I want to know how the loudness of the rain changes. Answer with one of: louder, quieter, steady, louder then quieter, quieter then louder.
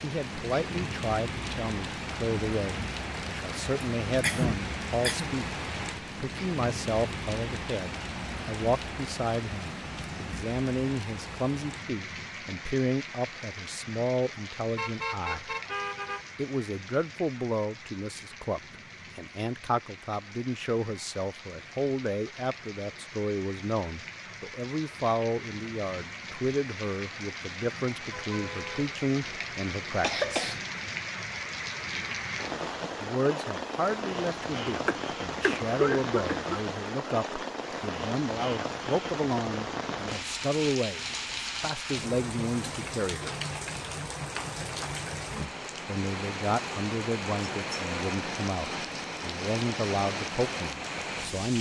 quieter then louder.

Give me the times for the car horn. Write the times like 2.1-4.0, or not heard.
14.8-16.2, 27.9-29.4.